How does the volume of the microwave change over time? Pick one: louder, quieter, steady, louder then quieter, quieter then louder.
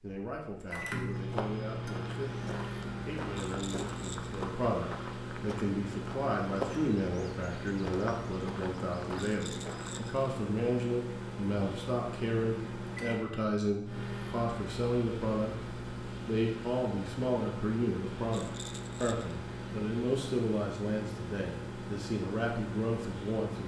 steady.